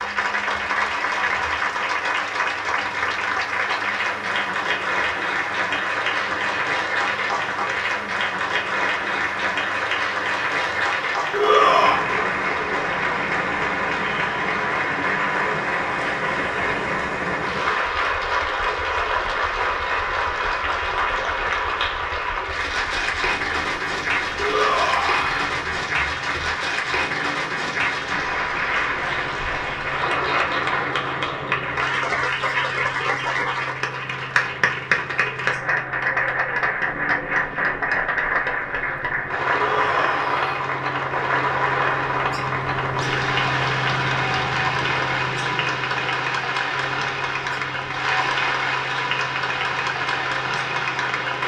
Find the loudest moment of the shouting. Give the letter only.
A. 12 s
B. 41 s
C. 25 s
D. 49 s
A.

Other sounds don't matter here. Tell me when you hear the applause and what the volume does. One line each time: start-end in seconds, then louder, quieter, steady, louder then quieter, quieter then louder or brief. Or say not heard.
0.0-51.4 steady.